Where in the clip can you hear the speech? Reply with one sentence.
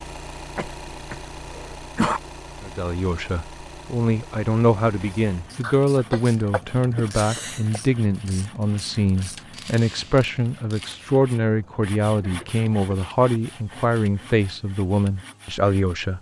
The speech can be heard from 2.6 to 16.1 s.